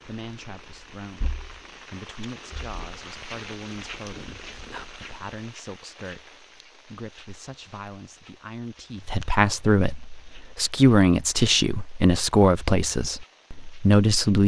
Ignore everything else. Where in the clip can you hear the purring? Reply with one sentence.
You can hear the purring from 0.2 to 5.3 s.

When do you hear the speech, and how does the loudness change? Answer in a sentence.
You can hear the speech from 0.0 to 14.4 s, getting louder.